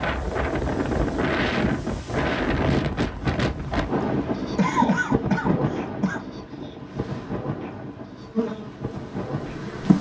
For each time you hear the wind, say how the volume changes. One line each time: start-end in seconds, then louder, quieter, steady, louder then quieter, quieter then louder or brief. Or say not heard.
0.0-9.7 quieter.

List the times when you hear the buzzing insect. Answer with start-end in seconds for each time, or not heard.
6.9-9.9.